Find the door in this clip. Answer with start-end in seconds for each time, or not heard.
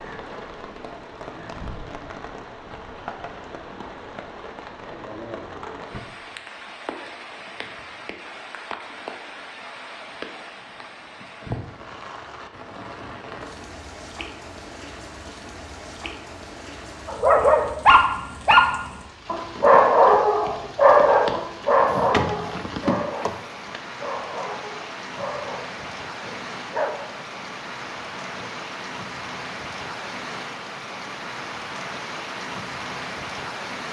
21.9-23.8.